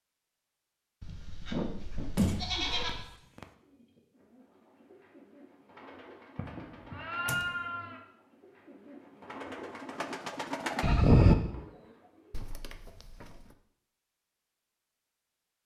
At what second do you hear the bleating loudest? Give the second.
11 s.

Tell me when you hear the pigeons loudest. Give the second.
11 s.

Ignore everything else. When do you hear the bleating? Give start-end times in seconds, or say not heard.
1.0-3.0, 6.3-8.0, 10.8-11.3.